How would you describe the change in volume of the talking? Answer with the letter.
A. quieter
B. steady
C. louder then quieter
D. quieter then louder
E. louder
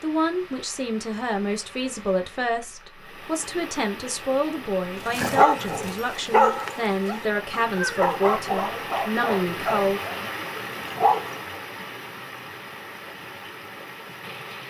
B.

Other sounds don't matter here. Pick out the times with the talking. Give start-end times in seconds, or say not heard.
0.0-10.0.